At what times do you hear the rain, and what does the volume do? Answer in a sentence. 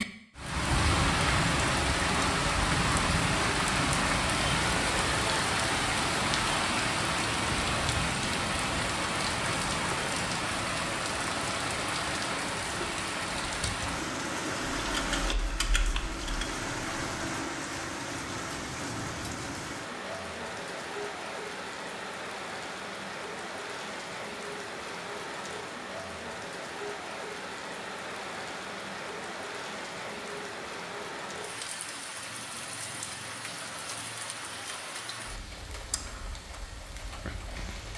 You can hear the rain from 0.0 to 37.9 s, getting quieter.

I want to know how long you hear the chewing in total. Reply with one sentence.
The chewing can't be heard in this clip.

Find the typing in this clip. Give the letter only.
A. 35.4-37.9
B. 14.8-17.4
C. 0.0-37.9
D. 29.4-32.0
B.